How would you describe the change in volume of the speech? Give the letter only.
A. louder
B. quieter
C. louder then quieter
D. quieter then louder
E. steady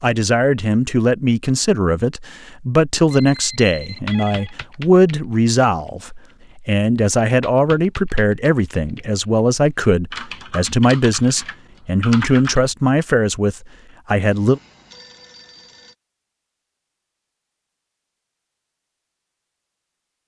E.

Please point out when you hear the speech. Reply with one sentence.
The speech can be heard from 0.0 to 14.6 s.